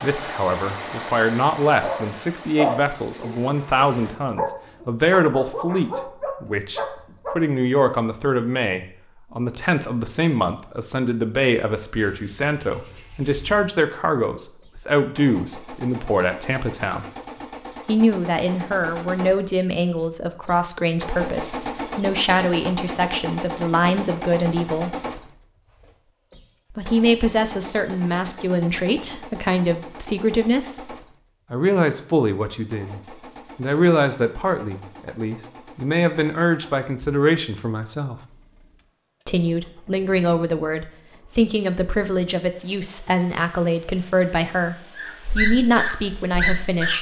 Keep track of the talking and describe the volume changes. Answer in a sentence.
The volume of the talking stays about the same.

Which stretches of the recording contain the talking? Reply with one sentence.
The talking can be heard from 0.0 to 17.1 s, from 17.9 to 24.9 s, from 26.7 to 38.2 s and from 39.2 to 46.9 s.